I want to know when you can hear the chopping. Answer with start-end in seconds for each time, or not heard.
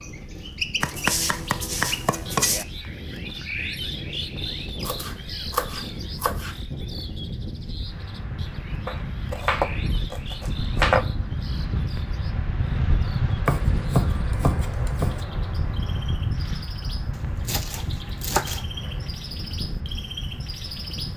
0.8-2.6, 4.8-6.5, 8.8-11.1, 13.4-15.2, 17.4-18.6.